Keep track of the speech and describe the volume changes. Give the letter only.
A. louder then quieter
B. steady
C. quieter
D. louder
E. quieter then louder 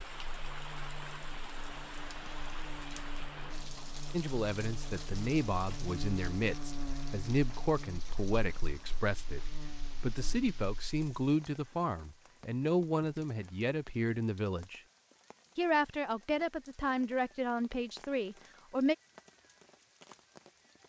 B.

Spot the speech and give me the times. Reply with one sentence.
The speech can be heard from 4.1 to 14.8 s and from 15.6 to 18.9 s.